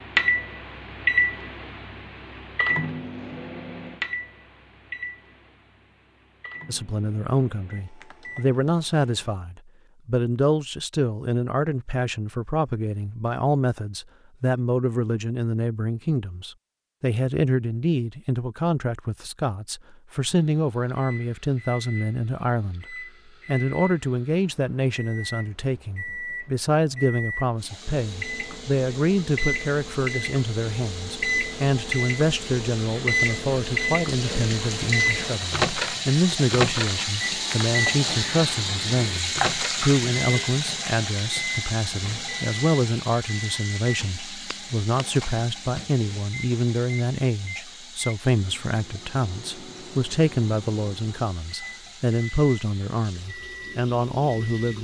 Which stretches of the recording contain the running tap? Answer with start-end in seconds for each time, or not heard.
27.6-54.7.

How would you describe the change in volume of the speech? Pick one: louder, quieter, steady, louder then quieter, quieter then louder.
steady.